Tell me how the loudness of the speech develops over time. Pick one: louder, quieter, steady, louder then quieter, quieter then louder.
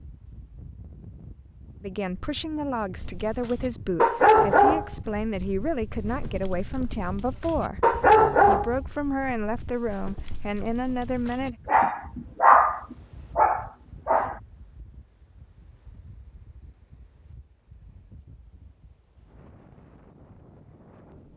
steady.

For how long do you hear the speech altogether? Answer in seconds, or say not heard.
10 s.